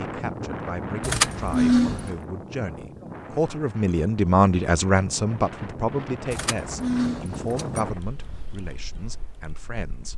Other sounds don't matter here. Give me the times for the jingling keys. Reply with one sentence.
The jingling keys can be heard from 1.0 to 2.1 s and from 6.3 to 7.8 s.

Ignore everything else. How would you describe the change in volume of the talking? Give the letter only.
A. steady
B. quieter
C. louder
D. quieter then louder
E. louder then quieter
E.